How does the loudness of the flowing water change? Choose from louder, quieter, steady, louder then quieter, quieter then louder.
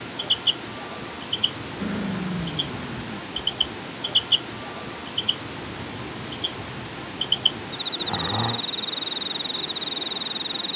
steady.